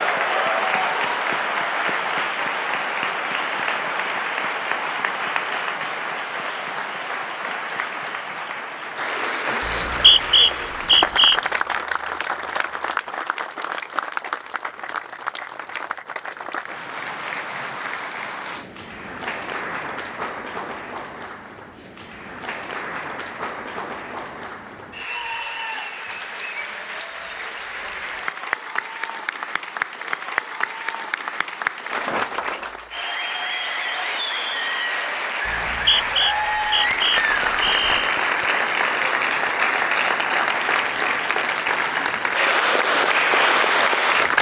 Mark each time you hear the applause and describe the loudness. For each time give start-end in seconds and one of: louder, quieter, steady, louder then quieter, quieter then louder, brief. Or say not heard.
0.0-44.3 quieter then louder.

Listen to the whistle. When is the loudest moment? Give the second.
10 s.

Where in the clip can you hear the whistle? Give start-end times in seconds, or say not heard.
9.7-11.4, 35.5-38.0.